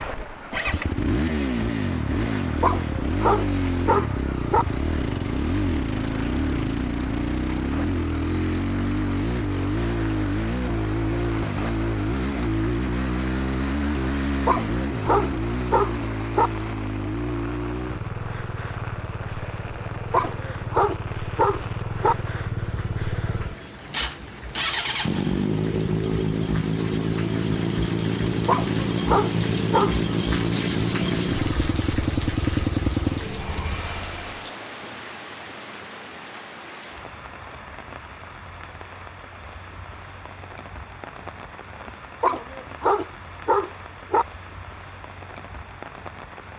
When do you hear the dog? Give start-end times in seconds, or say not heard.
2.6-4.7, 14.4-16.5, 20.1-22.1, 28.4-29.9, 42.2-44.2.